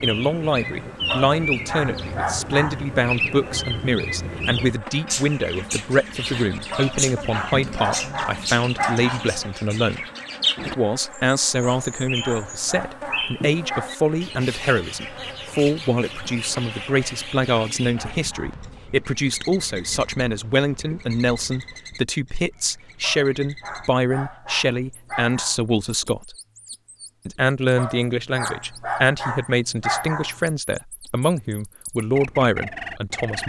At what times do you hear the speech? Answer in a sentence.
You can hear the speech from 0.0 to 26.4 s and from 27.2 to 33.4 s.